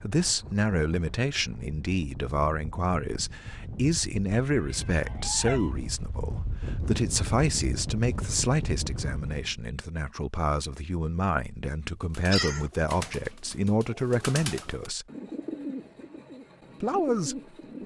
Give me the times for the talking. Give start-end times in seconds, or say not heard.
0.0-15.1, 16.8-17.8.